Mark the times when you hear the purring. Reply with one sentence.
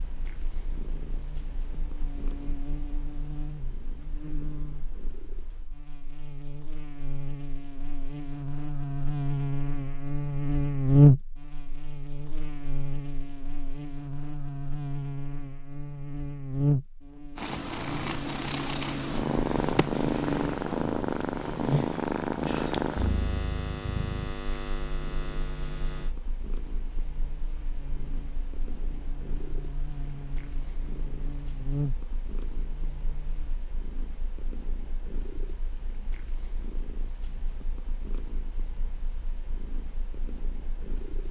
You can hear the purring from 0.0 to 5.7 s and from 17.4 to 41.2 s.